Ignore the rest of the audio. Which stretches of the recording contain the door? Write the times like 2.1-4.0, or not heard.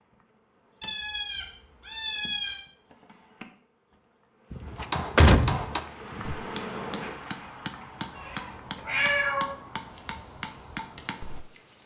4.5-6.3.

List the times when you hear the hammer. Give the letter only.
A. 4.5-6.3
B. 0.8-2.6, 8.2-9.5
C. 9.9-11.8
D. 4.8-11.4
D.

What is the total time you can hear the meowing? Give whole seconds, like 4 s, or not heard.
3 s.